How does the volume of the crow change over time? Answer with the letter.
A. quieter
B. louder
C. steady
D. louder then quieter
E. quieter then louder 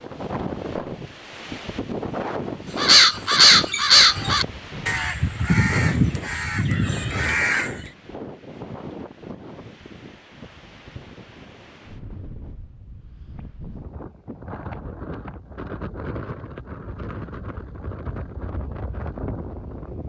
A.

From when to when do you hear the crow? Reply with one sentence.
You can hear the crow from 2.8 to 7.9 s.